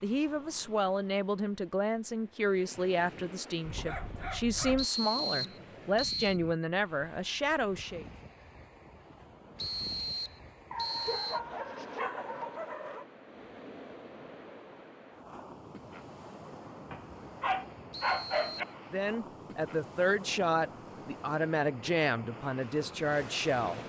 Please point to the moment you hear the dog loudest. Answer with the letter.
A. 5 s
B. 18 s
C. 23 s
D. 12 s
B.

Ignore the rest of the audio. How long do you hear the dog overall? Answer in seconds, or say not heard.
5 s.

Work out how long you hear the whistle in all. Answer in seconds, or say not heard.
4 s.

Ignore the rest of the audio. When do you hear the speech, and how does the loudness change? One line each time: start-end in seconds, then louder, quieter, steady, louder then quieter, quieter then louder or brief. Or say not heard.
0.0-8.1 steady
18.9-23.8 steady.